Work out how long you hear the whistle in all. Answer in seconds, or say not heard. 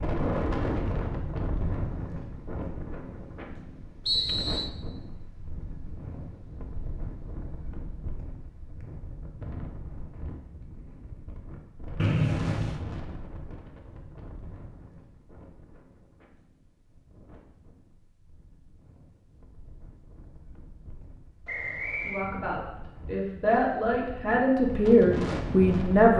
2 s.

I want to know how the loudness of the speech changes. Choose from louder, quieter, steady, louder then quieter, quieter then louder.
louder.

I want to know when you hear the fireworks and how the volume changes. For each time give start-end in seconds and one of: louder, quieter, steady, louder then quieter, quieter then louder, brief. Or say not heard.
not heard.